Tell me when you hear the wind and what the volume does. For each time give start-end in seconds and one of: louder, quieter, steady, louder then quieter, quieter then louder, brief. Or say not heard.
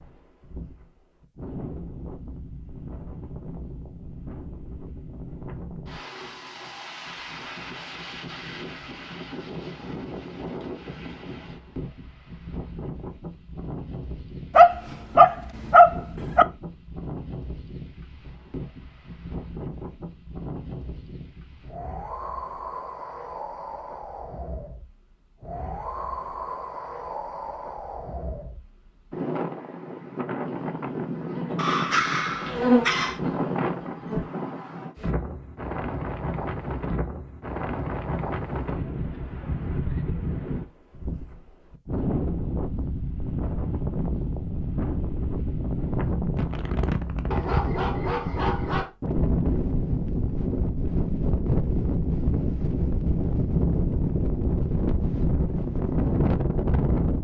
0.0-57.1 louder.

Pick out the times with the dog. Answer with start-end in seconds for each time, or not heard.
14.6-16.4, 31.6-33.2, 47.3-48.9.